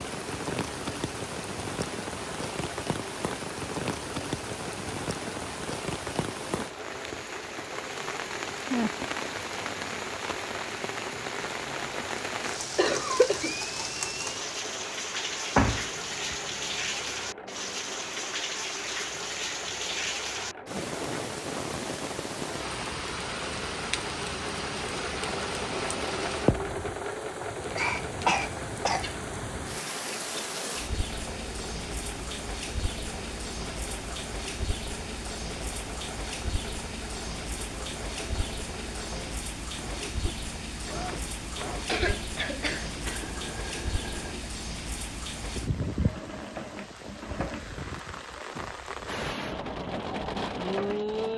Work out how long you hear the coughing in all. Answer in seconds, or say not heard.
4 s.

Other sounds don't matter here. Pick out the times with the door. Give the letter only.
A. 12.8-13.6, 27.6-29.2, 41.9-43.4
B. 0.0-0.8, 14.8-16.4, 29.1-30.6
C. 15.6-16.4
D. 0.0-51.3
C.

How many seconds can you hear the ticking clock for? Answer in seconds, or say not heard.
not heard.